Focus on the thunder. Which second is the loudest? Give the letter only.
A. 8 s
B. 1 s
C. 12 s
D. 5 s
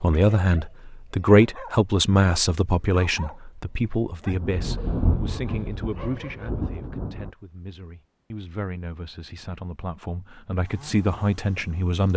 D.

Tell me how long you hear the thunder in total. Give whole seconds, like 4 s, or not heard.
3 s.